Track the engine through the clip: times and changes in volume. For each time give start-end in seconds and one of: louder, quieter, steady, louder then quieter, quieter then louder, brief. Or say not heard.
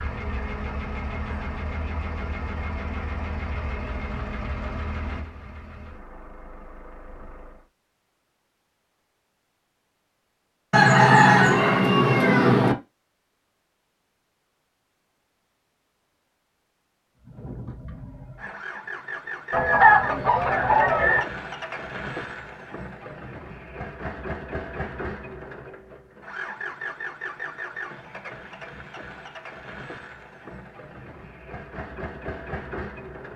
0.0-7.7 quieter
17.2-33.3 steady.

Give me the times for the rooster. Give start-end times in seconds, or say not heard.
10.7-12.8, 19.5-21.2.